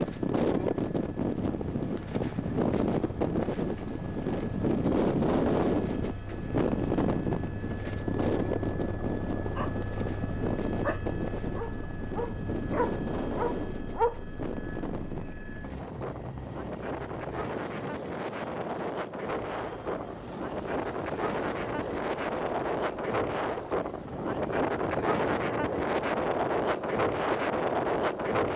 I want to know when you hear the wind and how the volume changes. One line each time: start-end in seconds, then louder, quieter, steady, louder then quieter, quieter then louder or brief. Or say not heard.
0.0-28.5 quieter then louder.